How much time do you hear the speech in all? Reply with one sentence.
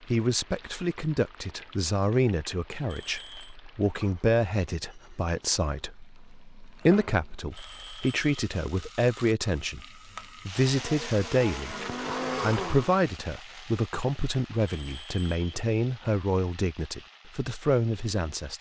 The speech can be heard for 17 seconds in total.